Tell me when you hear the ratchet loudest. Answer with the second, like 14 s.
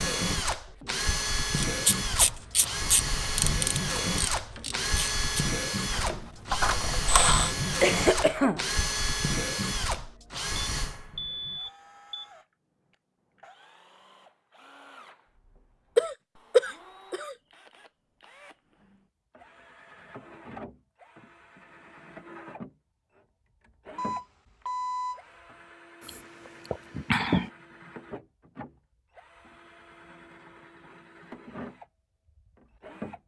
7 s.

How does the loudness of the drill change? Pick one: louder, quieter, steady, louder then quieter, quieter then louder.
quieter then louder.